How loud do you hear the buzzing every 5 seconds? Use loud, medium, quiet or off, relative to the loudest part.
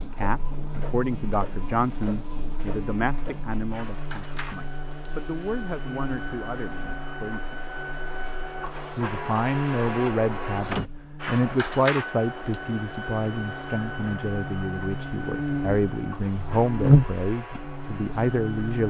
quiet, quiet, quiet, loud.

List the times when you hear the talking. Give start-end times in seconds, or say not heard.
0.0-7.6, 8.9-18.8.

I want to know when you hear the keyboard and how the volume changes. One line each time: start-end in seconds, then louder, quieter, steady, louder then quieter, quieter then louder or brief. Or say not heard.
not heard.